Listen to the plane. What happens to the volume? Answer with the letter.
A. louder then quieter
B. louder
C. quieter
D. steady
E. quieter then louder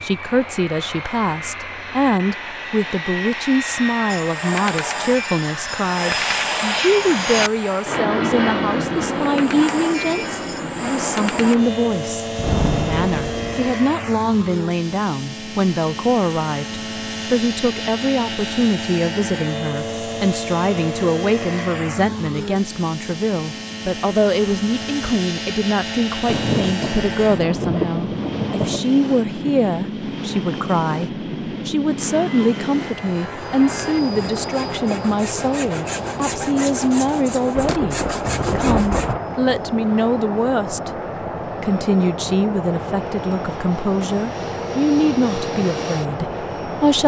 D.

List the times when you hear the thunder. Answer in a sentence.
The thunder can be heard from 12.3 to 13.7 s, from 26.2 to 28.9 s and from 37.5 to 39.2 s.